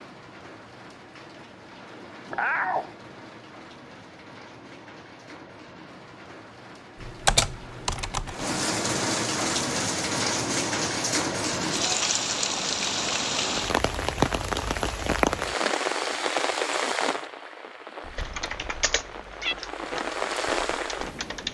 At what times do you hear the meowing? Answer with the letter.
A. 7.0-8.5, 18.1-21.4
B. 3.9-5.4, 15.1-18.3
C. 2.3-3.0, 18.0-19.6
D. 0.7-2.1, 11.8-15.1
C.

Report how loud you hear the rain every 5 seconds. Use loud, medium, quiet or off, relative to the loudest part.
quiet, medium, loud, loud, loud.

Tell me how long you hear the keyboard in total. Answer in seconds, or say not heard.
5 s.